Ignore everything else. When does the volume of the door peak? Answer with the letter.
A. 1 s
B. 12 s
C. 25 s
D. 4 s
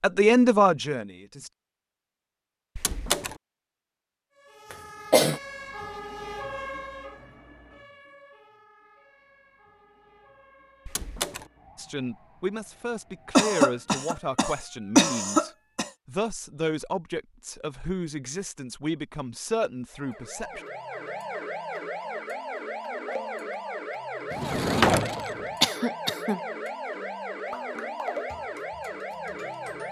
C.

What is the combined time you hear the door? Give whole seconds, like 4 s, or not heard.
2 s.